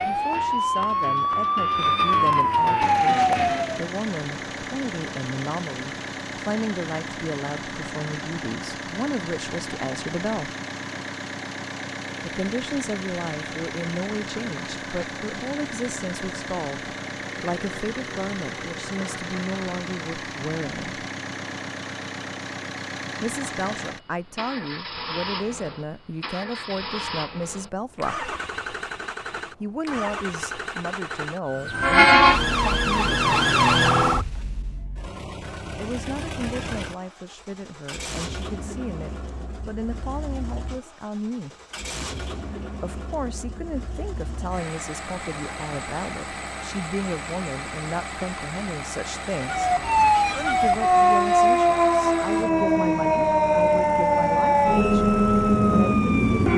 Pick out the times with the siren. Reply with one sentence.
You can hear the siren from 0.0 to 3.9 s, from 31.4 to 34.5 s and from 49.4 to 56.5 s.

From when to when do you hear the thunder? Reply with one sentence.
You can't hear the thunder here.